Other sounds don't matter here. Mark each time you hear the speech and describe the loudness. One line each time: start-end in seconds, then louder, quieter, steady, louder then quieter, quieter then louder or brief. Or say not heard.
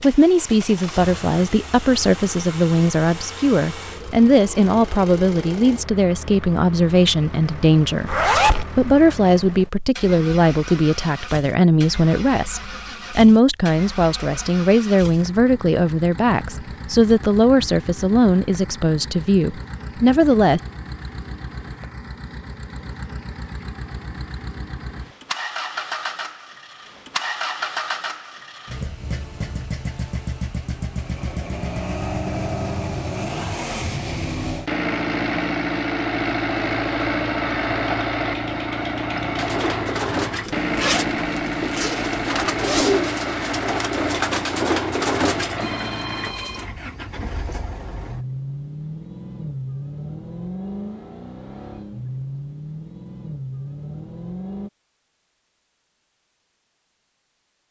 0.0-20.6 steady.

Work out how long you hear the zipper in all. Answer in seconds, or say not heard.
3 s.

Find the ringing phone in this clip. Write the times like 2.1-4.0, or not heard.
45.5-46.7.